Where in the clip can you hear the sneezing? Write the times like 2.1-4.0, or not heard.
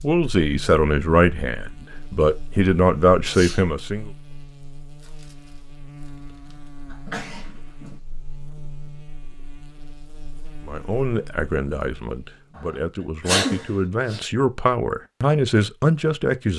3.2-3.7, 6.9-8.0, 13.2-14.2.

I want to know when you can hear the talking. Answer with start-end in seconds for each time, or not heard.
0.0-4.1, 10.7-16.5.